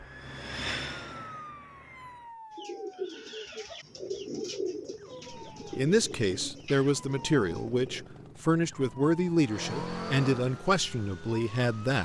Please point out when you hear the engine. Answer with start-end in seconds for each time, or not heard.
0.0-2.4, 9.4-11.9.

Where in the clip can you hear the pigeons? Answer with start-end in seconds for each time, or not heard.
2.5-8.1.